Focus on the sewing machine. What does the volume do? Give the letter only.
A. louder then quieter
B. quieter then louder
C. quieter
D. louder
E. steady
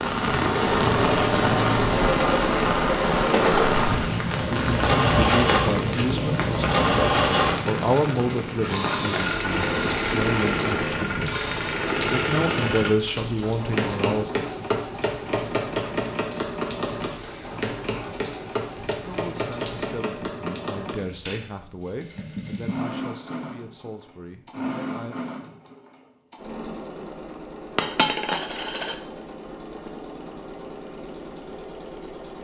C.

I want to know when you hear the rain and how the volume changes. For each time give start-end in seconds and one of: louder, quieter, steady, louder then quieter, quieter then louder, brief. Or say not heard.
0.0-19.9 quieter.